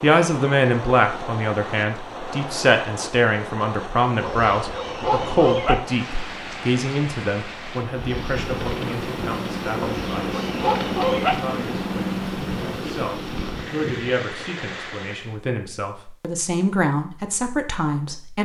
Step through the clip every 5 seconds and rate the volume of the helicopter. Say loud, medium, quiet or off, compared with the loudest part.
off, loud, loud, off.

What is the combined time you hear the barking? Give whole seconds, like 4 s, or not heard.
3 s.